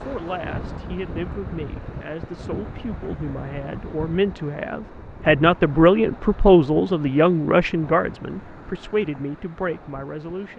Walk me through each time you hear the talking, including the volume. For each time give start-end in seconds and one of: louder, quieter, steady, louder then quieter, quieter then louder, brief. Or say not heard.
0.0-10.5 louder then quieter.